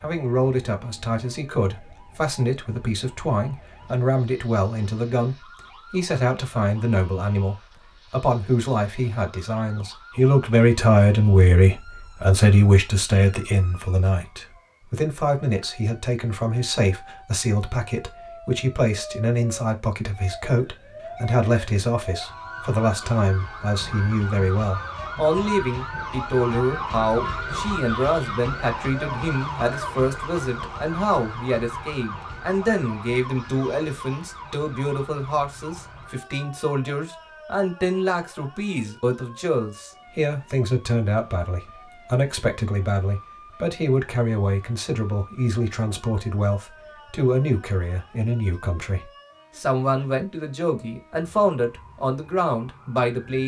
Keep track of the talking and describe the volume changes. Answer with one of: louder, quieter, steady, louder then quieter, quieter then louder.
steady.